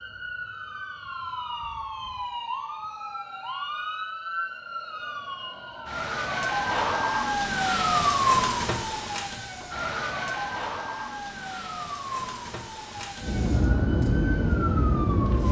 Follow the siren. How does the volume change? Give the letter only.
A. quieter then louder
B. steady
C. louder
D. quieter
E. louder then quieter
E.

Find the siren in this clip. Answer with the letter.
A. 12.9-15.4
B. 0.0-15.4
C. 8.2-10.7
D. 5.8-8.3
B.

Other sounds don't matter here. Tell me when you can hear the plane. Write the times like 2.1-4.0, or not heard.
12.9-15.4.